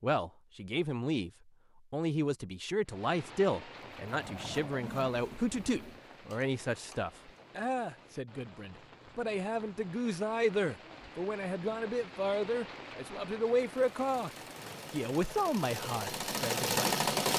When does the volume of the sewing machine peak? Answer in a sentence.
The loudest moment of the sewing machine is at 17 seconds.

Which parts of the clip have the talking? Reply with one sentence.
You can hear the talking from 0.0 to 14.3 s and from 14.9 to 16.9 s.